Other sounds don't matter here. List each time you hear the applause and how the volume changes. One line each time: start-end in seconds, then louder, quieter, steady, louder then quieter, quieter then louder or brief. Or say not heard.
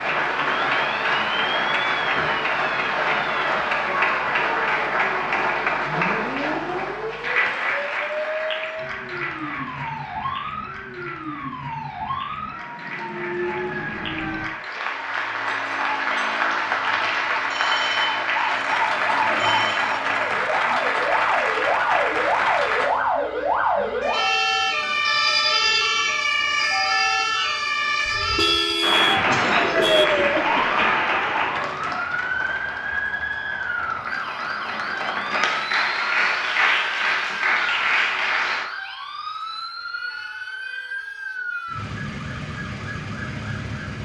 0.0-22.9 quieter then louder
28.8-38.6 quieter then louder.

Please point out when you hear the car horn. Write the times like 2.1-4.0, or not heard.
28.1-30.1.